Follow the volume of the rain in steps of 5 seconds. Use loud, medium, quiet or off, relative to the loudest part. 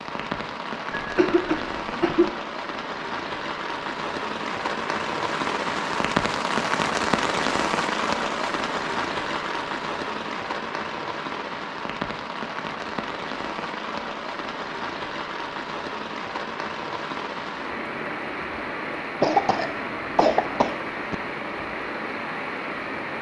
medium, loud, medium, medium, medium.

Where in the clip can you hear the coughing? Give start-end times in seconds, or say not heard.
0.9-2.3, 19.2-21.1.